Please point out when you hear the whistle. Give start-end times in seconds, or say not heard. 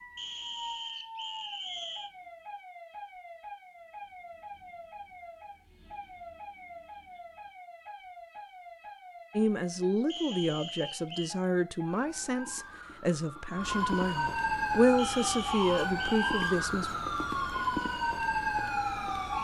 0.1-2.1, 10.1-11.3, 14.9-16.3.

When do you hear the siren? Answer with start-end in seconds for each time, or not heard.
0.0-19.3.